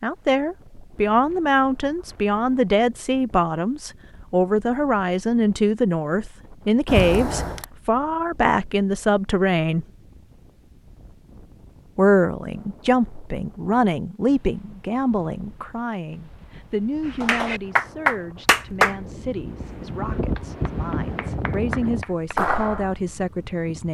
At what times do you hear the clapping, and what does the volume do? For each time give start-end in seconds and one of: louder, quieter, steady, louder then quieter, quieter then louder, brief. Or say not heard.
17.2-22.9 quieter then louder.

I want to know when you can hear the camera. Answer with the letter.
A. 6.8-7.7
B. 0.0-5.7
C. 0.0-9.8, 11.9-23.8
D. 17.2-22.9
A.